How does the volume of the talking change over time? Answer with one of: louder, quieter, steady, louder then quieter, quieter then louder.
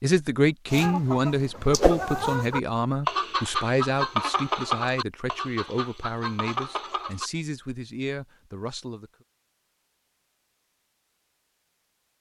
quieter.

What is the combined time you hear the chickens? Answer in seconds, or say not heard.
7 s.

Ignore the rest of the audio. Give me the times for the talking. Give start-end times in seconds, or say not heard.
0.0-9.1.